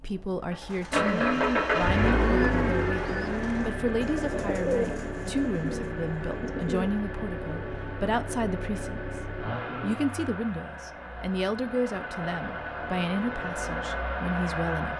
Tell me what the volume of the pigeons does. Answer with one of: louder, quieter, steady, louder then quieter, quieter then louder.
quieter.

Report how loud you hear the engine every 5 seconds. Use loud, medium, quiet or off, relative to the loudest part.
loud, medium, medium.